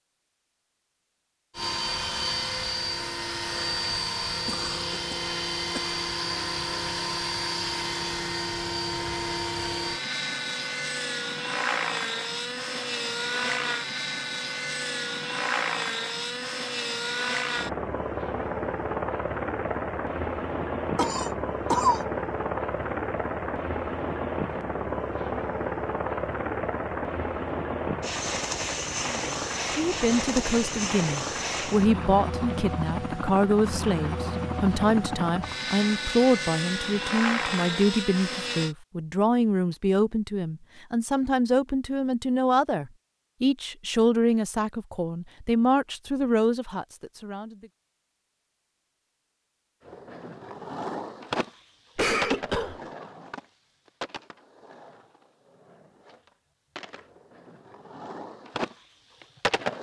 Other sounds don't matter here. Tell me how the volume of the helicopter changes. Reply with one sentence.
The loudness of the helicopter stays about the same.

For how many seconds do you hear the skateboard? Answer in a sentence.
You can hear the skateboard for 10 seconds altogether.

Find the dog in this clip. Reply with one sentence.
The dog can't be heard in this clip.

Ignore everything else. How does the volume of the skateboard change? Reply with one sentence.
The loudness of the skateboard goes down, then up.